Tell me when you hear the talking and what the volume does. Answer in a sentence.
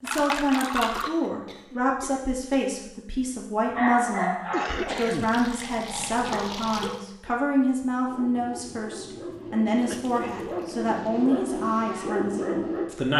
The talking can be heard from 0.0 to 13.1 s, at a steady volume.